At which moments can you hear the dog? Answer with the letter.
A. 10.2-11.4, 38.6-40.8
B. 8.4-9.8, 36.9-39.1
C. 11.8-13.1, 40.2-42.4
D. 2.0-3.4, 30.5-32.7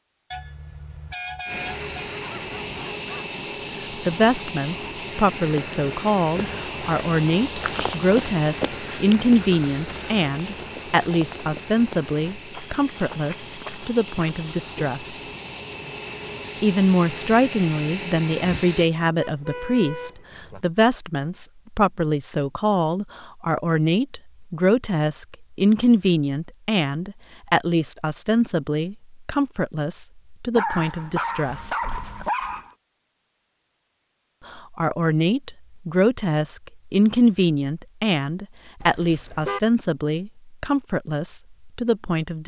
D.